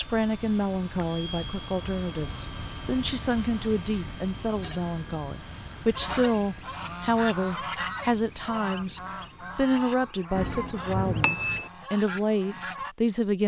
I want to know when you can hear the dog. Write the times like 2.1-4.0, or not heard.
not heard.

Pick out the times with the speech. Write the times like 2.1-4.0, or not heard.
0.0-13.4.